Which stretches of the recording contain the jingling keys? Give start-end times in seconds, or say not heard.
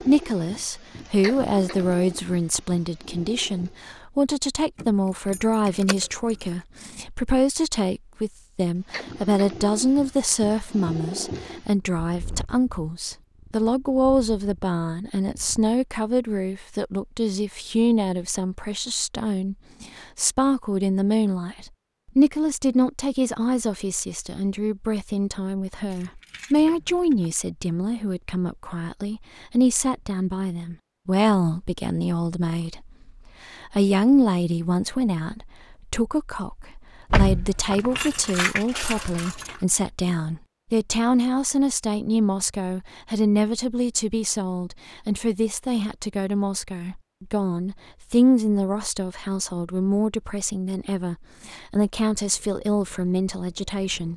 4.8-6.3, 25.9-27.3, 37.1-39.6.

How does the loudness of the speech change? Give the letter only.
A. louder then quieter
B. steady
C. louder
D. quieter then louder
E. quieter
B.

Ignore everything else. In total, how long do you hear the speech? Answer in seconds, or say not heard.
54 s.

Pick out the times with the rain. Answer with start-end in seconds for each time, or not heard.
not heard.